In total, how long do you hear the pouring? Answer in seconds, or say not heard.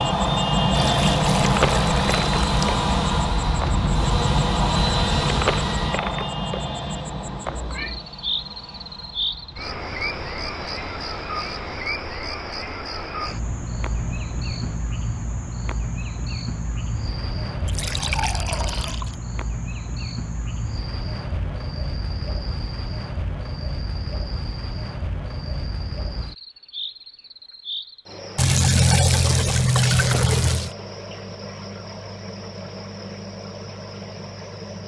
6 s.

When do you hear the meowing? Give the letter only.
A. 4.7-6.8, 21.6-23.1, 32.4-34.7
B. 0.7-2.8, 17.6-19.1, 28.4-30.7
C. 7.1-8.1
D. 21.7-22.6
C.